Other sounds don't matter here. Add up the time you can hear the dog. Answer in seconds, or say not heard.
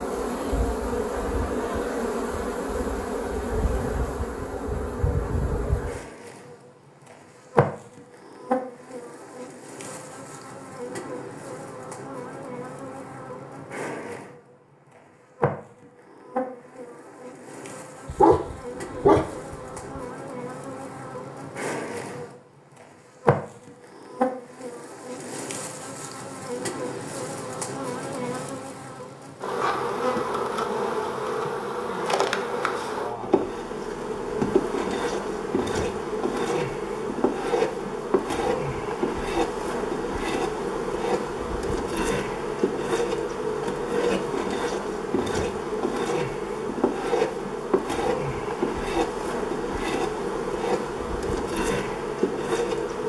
2 s.